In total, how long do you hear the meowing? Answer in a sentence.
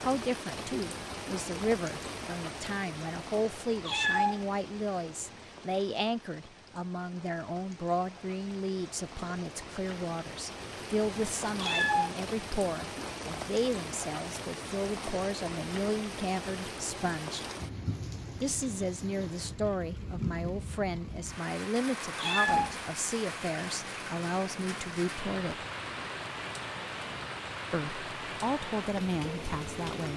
You can hear the meowing for 2 seconds altogether.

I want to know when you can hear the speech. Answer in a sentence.
You can hear the speech from 0.0 to 17.4 s, from 18.4 to 25.6 s and from 27.7 to 30.1 s.